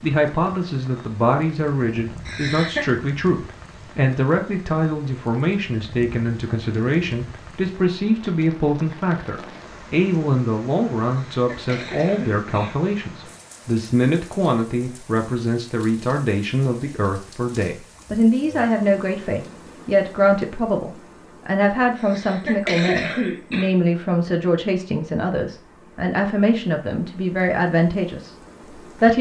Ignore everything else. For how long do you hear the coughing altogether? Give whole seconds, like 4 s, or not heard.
4 s.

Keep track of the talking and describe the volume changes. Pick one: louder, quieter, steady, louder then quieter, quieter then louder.
steady.